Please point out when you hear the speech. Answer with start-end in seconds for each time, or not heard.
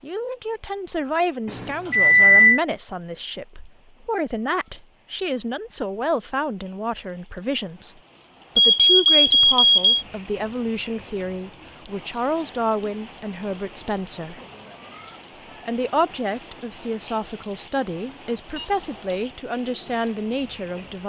0.0-8.0, 8.6-14.4, 15.6-21.0.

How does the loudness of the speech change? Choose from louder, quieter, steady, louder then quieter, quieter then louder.
steady.